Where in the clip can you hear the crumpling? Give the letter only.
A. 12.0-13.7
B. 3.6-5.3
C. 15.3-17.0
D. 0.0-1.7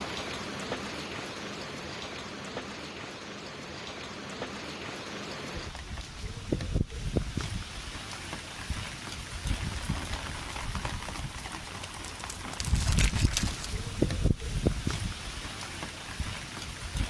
A.